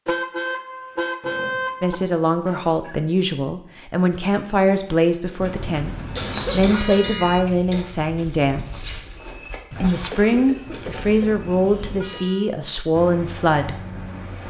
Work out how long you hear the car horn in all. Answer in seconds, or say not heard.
6 s.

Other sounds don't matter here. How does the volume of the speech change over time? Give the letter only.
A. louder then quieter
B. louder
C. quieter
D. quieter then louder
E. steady
E.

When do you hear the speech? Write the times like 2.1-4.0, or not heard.
1.8-9.0, 9.8-13.8.